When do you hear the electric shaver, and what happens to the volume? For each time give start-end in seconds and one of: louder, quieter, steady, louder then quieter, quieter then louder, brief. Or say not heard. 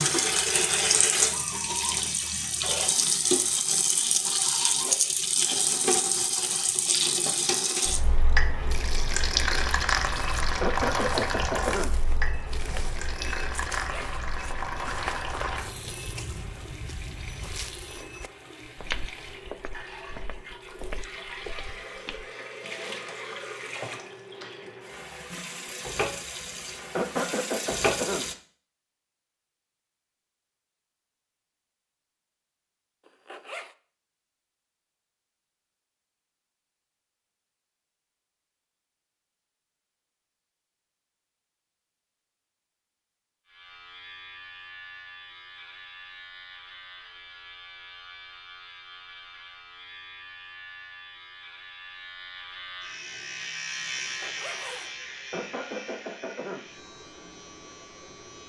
43.5-58.4 louder then quieter.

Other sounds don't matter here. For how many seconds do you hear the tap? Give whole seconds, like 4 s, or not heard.
28 s.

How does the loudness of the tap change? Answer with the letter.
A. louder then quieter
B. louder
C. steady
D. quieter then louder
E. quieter
D.